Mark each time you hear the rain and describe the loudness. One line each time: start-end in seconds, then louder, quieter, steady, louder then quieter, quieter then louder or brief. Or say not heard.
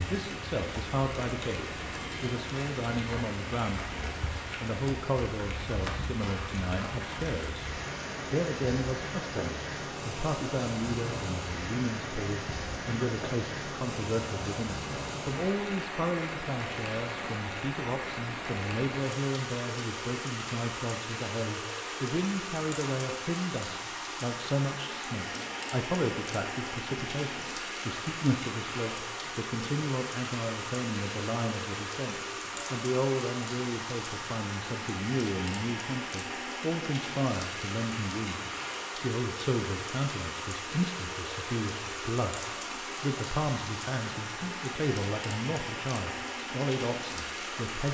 0.0-47.8 steady.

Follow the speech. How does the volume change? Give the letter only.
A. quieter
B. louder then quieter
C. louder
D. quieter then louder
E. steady
E.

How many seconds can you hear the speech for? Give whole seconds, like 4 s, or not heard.
47 s.